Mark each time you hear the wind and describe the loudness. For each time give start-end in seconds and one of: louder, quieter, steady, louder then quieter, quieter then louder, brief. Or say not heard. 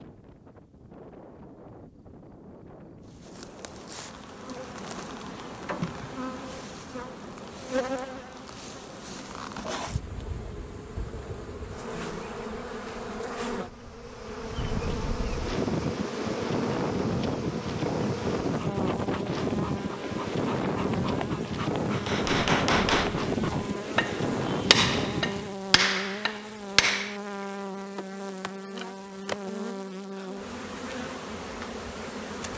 0.0-25.6 louder.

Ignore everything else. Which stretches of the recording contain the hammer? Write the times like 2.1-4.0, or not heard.
21.9-27.1.